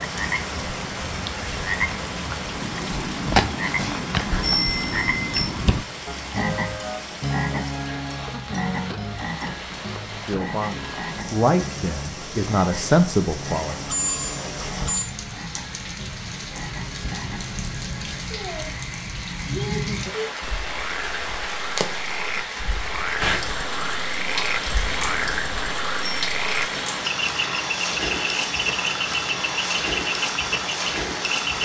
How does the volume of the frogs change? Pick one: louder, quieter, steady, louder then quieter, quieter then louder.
quieter then louder.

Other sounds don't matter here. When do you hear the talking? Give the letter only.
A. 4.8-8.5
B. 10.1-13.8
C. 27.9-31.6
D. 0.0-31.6
B.